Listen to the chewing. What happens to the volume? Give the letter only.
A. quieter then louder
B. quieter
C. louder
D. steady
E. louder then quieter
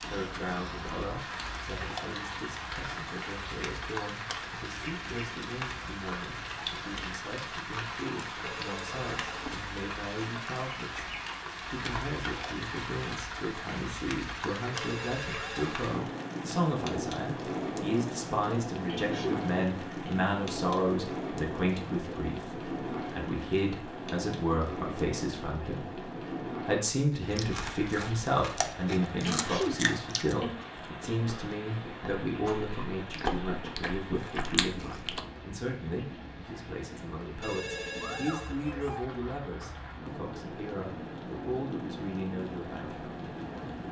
A.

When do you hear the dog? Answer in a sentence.
You can't hear the dog here.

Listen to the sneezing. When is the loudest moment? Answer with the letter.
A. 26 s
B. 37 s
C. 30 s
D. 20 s
C.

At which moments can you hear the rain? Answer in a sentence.
The rain can be heard from 0.0 to 43.8 s.